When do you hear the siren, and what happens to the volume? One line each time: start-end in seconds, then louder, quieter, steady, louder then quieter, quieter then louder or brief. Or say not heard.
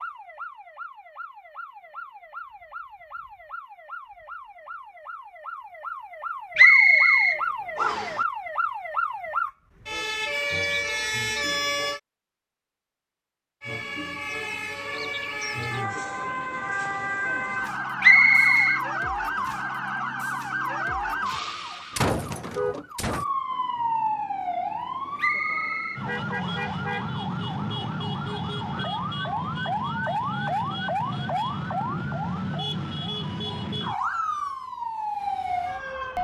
0.0-12.0 louder
13.6-36.1 steady.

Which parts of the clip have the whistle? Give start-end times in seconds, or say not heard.
6.5-8.2, 18.0-18.8, 25.1-26.8.